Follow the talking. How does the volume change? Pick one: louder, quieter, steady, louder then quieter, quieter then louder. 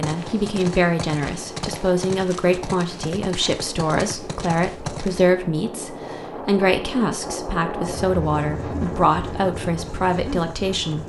steady.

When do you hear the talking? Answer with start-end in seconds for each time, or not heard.
0.0-11.0.